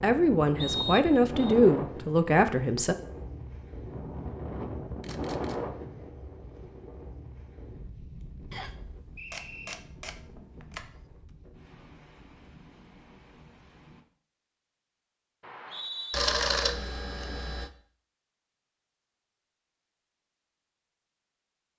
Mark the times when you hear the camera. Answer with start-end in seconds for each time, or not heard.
5.0-5.6, 9.3-10.9, 16.1-17.7.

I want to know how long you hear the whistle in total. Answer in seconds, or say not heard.
3 s.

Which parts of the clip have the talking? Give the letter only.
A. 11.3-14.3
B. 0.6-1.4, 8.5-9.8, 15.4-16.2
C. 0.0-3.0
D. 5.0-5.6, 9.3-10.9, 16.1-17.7
C.